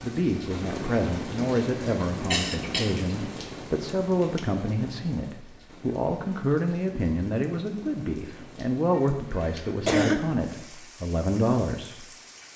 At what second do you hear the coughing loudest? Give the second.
10 s.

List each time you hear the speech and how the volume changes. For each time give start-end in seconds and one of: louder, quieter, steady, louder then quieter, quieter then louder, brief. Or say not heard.
0.0-12.1 steady.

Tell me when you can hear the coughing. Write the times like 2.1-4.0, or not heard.
2.3-3.0, 8.9-10.5.